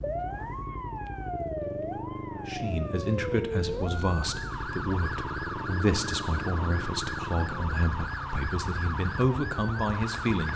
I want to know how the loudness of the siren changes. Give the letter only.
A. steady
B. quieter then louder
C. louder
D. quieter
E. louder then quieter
A.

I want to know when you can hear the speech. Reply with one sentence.
You can hear the speech from 2.5 to 10.5 s.